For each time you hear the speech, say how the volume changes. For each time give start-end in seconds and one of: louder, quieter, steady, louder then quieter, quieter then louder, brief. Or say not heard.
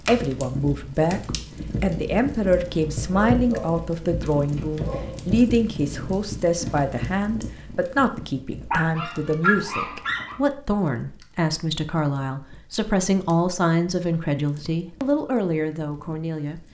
0.1-16.6 steady.